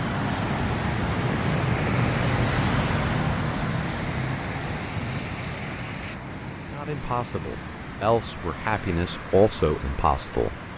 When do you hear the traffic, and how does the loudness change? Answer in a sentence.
You can hear the traffic from 0.0 to 10.7 s, getting quieter.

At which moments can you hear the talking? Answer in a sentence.
The talking can be heard from 6.7 to 10.5 s.